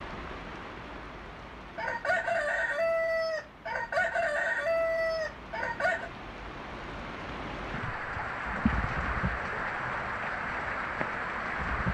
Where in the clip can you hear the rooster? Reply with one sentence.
The rooster can be heard from 1.8 to 6.1 s.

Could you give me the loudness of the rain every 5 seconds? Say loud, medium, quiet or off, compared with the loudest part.
quiet, loud, loud.